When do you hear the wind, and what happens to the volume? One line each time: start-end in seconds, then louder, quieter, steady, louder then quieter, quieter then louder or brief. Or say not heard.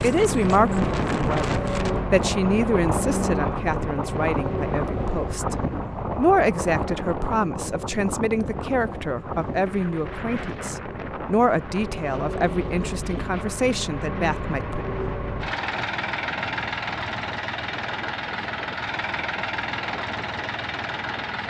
0.0-21.4 quieter.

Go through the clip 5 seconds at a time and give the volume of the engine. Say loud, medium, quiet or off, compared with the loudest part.
loud, medium, medium, loud, loud.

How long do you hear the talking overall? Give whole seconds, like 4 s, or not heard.
14 s.